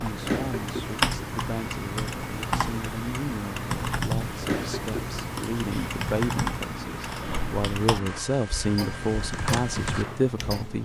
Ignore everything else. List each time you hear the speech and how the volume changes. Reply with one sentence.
You can hear the speech from 0.0 to 10.8 s, getting louder.